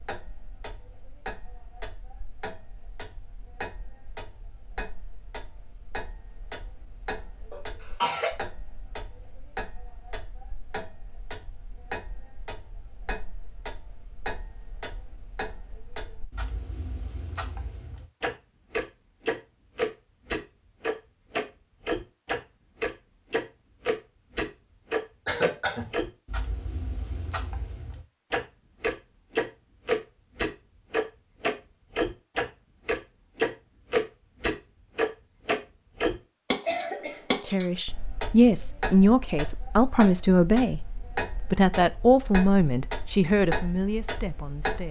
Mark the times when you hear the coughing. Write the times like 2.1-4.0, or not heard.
7.5-8.3, 25.2-25.9, 36.6-37.8.